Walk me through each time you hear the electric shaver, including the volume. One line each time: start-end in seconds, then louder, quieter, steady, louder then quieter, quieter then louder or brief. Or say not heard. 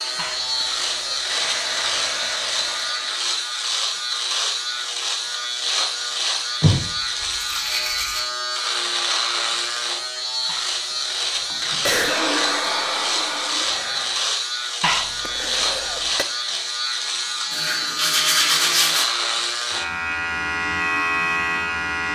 0.0-22.0 steady.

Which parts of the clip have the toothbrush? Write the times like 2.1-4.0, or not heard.
6.6-8.2, 17.5-19.1.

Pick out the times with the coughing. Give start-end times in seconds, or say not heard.
0.1-1.3, 10.4-12.2, 14.8-16.2.